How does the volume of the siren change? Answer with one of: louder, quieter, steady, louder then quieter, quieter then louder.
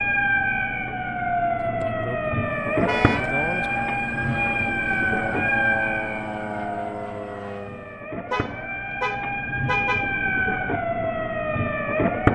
quieter then louder.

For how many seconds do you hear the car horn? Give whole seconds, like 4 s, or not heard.
2 s.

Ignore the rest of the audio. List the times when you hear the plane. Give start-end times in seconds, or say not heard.
2.5-8.1.